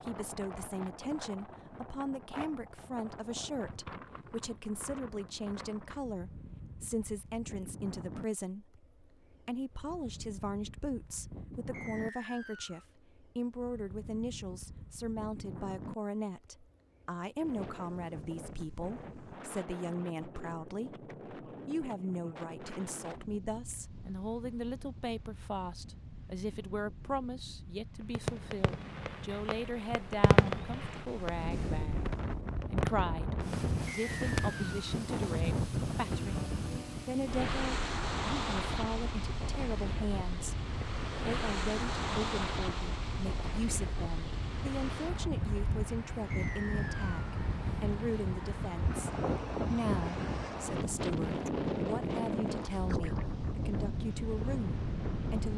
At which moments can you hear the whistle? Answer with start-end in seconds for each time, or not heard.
11.7-12.8, 33.9-34.8, 46.3-47.2.